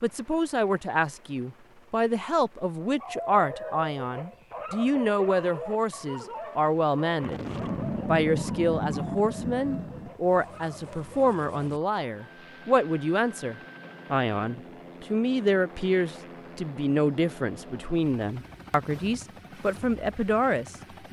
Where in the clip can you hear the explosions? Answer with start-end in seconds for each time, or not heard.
7.2-10.2.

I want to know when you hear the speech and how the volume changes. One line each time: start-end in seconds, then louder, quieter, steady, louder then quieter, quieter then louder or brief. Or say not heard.
0.0-21.0 steady.